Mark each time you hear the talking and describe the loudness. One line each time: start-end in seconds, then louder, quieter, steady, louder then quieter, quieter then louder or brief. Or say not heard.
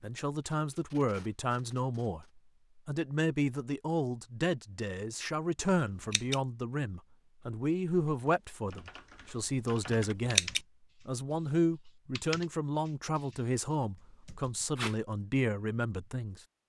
0.0-16.4 steady.